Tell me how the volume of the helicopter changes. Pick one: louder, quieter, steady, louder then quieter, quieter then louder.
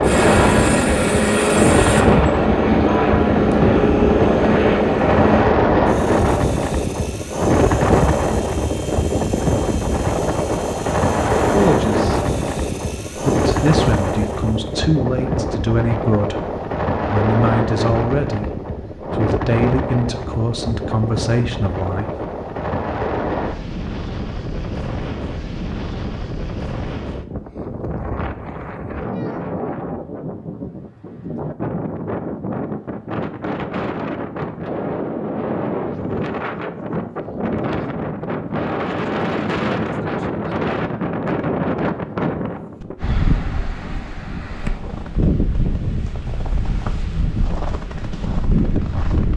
quieter.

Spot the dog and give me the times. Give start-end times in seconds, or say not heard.
not heard.